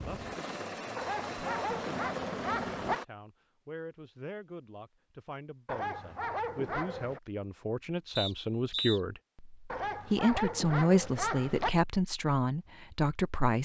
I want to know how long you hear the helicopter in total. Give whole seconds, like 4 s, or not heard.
3 s.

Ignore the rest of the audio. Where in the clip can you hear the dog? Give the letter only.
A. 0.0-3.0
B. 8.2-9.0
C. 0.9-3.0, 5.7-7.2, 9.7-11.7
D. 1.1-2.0
C.